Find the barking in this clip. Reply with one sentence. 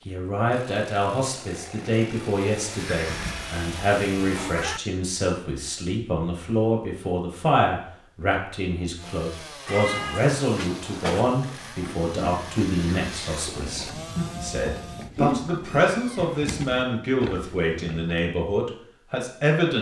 You can't hear the barking here.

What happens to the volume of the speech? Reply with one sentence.
The volume of the speech stays about the same.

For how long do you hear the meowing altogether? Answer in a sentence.
The meowing can be heard for 5 seconds in total.